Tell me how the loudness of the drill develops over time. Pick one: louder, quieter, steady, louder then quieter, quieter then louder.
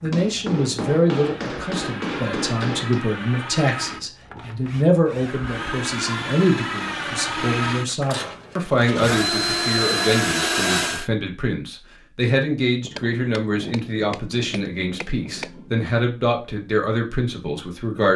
louder.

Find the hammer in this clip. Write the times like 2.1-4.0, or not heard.
0.1-3.0, 12.8-15.8.